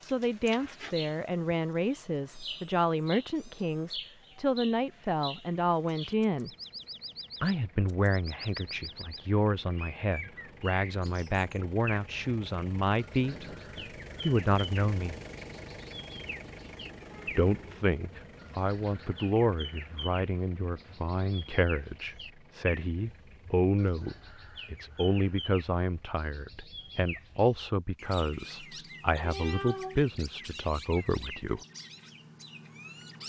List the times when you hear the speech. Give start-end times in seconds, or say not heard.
0.0-6.5, 7.4-13.4, 14.2-15.2, 17.2-31.6.